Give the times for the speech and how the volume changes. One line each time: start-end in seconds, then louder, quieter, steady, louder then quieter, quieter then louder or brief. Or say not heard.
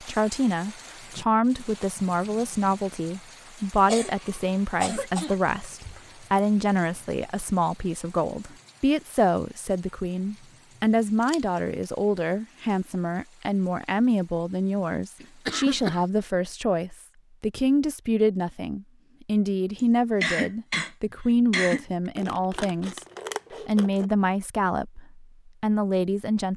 0.0-23.0 steady
23.6-26.5 brief.